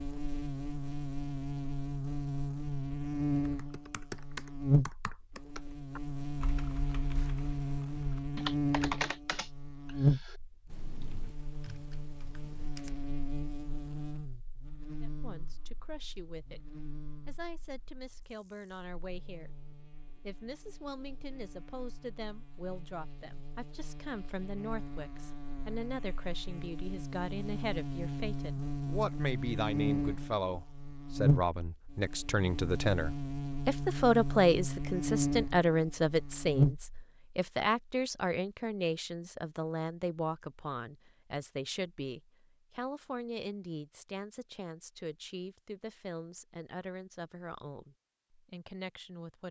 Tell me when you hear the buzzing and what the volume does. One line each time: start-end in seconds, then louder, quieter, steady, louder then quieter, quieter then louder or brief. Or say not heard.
0.0-36.9 quieter then louder.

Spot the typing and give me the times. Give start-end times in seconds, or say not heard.
3.5-13.1.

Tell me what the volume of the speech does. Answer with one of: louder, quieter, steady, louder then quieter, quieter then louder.
louder then quieter.